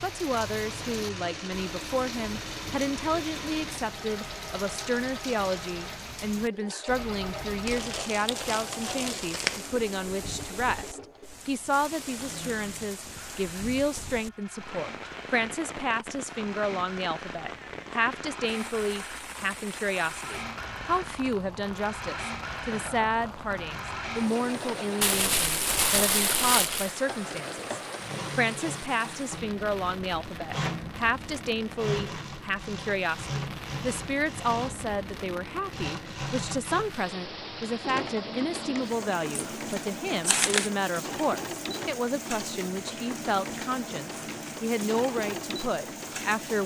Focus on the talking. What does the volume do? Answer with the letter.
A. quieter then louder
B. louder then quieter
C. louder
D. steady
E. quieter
D.